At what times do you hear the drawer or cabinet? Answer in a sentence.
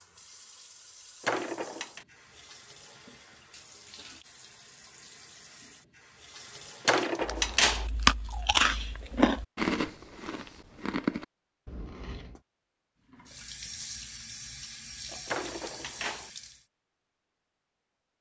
You can hear the drawer or cabinet from 1.2 to 2.0 s, from 6.8 to 7.8 s and from 15.2 to 16.3 s.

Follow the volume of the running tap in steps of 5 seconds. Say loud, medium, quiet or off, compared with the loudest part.
medium, medium, loud, loud.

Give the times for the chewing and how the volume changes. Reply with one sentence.
You can hear the chewing from 7.2 to 12.4 s, getting quieter.